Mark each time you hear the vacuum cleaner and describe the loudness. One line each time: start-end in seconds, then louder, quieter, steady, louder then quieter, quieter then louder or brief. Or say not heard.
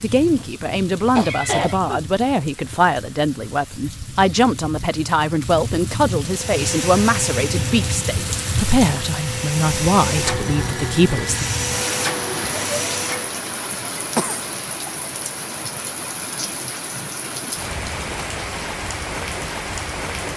6.2-13.3 quieter then louder.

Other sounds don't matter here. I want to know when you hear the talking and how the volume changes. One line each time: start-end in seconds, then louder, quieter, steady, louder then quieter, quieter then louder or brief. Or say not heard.
0.0-11.4 steady.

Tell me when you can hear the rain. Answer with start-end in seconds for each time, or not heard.
0.0-20.3.